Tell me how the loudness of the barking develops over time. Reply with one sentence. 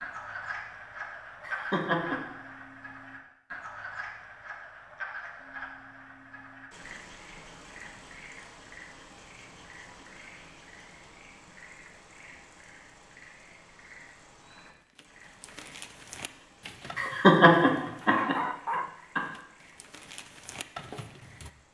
The loudness of the barking goes up, then down.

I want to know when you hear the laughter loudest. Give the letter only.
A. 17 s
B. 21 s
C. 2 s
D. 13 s
A.